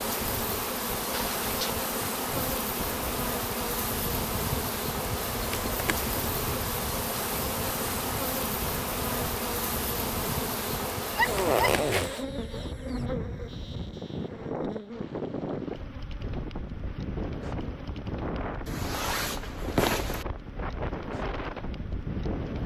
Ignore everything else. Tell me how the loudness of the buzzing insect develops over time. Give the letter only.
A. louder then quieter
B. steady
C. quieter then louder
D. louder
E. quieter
E.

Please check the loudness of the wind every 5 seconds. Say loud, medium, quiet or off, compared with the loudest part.
medium, medium, loud, loud, loud.